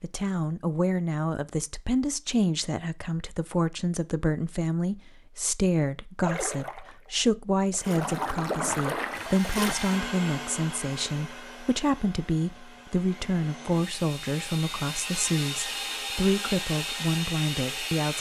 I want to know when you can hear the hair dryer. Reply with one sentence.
The hair dryer can be heard from 9.1 to 18.1 s.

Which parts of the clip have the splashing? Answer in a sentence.
You can hear the splashing from 6.2 to 9.8 s.